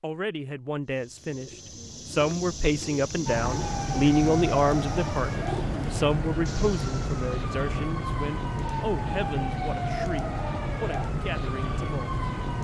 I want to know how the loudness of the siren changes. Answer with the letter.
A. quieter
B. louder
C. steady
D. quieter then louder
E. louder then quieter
C.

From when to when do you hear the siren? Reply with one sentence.
You can hear the siren from 3.2 to 12.6 s.